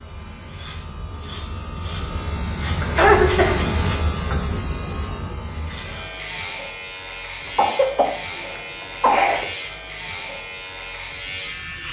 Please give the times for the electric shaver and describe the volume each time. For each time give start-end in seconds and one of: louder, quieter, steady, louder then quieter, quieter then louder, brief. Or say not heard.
0.0-11.8 louder then quieter.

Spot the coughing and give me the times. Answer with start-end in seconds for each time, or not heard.
2.8-3.8, 7.5-9.4.